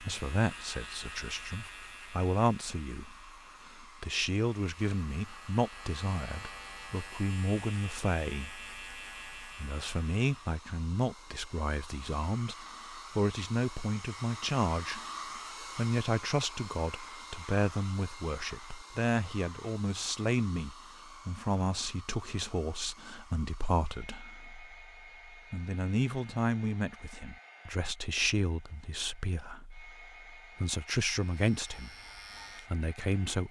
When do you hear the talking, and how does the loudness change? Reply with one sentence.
You can hear the talking from 0.0 to 31.9 s, at a steady volume; and briefly from 32.7 to 33.4 s.